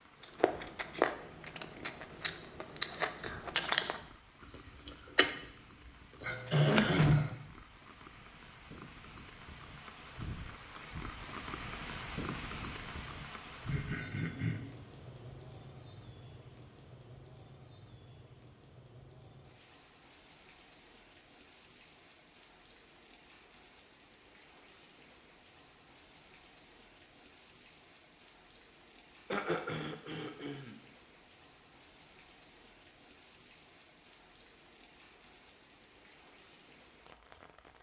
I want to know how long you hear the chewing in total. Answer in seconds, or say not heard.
5 s.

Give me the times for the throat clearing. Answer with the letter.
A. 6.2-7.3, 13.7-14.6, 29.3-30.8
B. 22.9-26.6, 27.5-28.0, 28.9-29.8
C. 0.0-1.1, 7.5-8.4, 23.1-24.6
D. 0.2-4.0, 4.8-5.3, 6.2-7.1
A.